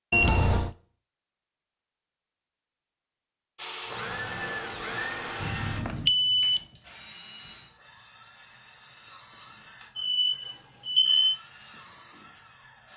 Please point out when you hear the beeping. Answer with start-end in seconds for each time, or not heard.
0.1-0.8, 5.4-6.6, 9.9-11.3.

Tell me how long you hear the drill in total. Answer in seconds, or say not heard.
9 s.